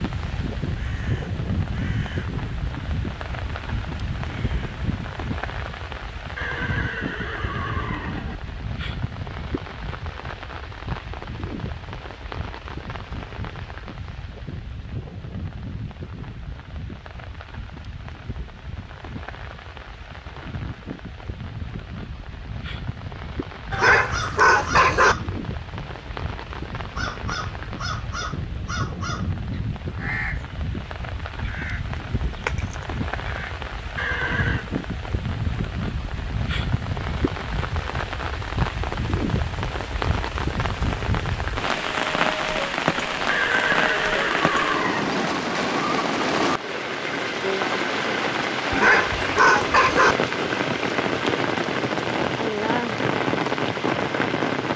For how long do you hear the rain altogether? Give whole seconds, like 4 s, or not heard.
55 s.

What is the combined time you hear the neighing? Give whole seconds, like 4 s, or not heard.
5 s.